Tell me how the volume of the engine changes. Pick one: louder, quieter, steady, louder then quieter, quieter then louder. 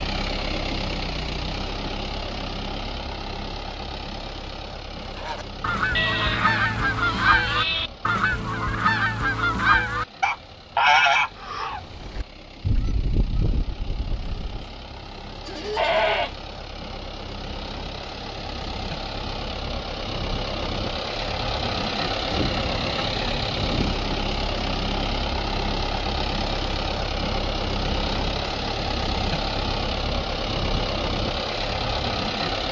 quieter then louder.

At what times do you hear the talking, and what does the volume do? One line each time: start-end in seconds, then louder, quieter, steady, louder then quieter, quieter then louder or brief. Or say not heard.
not heard.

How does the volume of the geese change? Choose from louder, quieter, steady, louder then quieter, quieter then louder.
quieter.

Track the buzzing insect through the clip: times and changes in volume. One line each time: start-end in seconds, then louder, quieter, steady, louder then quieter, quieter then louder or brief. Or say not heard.
not heard.